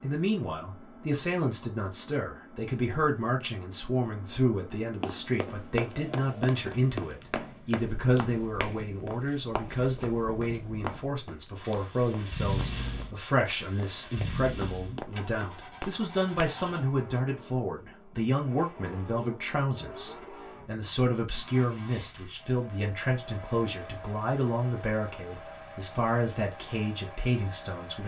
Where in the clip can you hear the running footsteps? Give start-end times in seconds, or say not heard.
5.0-16.5.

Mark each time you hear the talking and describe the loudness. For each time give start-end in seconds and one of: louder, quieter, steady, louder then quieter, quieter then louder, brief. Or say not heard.
0.0-28.0 steady.